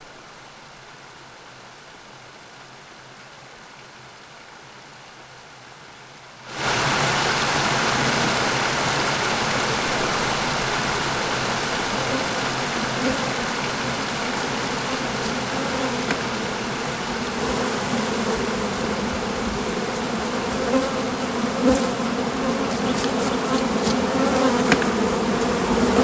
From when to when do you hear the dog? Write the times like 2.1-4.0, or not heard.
not heard.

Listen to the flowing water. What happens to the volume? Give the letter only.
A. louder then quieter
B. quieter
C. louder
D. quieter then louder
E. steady
A.